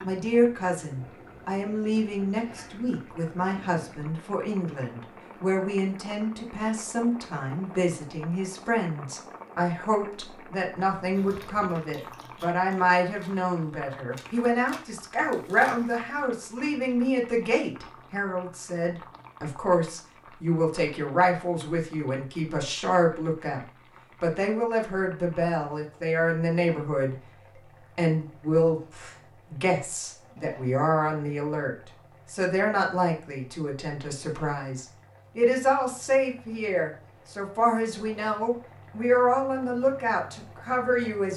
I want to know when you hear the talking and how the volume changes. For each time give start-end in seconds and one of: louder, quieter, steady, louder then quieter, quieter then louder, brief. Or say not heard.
0.0-41.3 steady.